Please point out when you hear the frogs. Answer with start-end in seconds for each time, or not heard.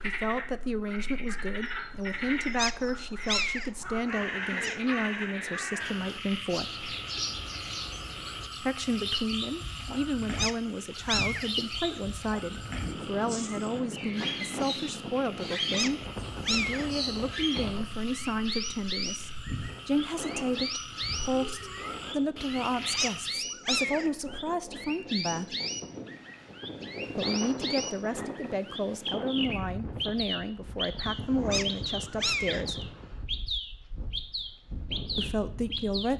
0.0-23.4.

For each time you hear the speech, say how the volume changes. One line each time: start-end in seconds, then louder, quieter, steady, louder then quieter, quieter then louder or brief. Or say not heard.
0.0-6.8 steady
8.6-25.6 steady
27.1-33.0 steady
35.1-36.1 brief.